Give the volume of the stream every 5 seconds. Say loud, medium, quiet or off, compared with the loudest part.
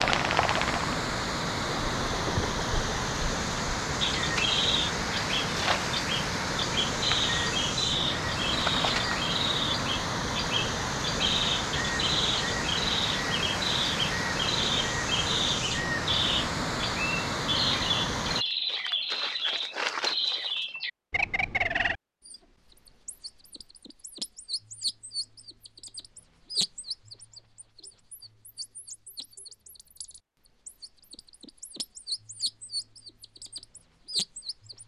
loud, loud, loud, loud, off, off, off.